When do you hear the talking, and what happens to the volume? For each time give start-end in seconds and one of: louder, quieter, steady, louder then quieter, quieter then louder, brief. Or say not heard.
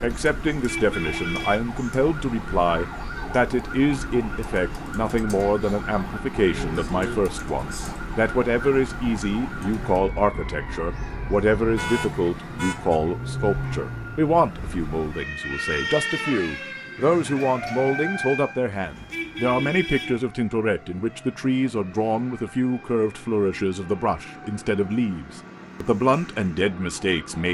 0.0-27.5 steady.